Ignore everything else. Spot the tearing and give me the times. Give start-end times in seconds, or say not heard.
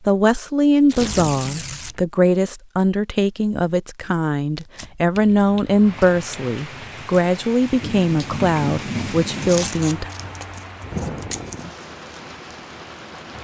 0.8-2.0, 4.5-5.0, 9.4-11.6.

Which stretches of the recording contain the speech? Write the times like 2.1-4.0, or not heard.
0.1-10.1.